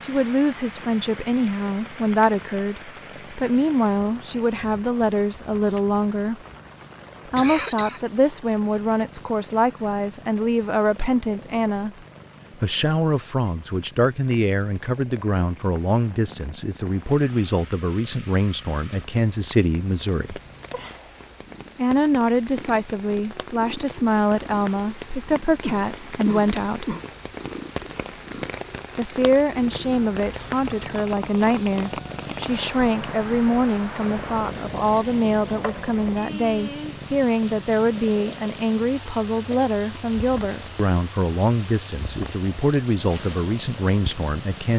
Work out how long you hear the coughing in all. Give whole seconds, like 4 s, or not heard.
3 s.